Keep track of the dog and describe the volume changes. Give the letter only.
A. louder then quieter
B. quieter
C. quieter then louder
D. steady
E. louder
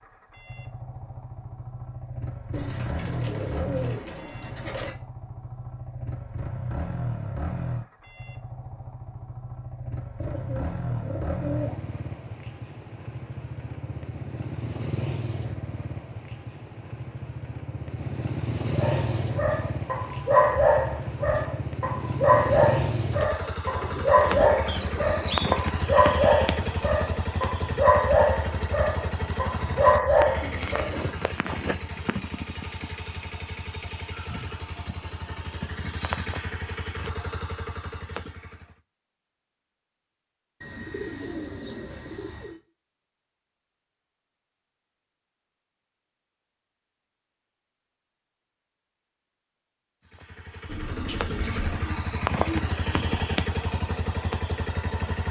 D.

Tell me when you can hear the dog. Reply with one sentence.
You can hear the dog from 18.8 to 30.9 s.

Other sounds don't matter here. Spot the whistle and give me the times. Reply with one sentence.
You can hear the whistle from 24.6 to 25.5 s.